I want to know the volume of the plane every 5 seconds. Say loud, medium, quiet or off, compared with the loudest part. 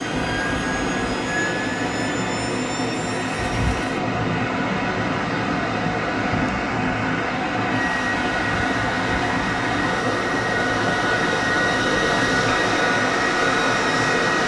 medium, medium, loud.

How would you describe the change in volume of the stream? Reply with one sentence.
The loudness of the stream stays about the same.